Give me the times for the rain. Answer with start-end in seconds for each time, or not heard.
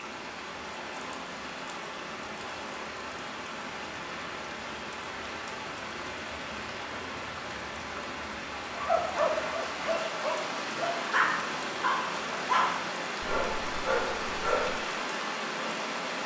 0.0-16.2.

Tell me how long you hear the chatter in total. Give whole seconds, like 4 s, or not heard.
not heard.